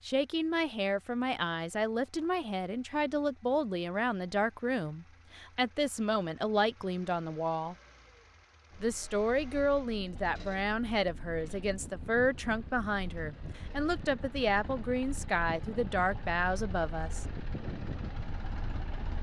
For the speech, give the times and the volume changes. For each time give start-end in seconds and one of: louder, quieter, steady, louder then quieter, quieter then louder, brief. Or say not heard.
0.1-7.8 steady
8.8-17.2 steady.